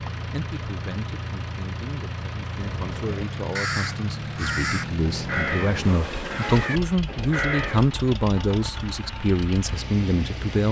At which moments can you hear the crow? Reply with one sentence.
The crow can be heard from 2.5 to 7.9 s.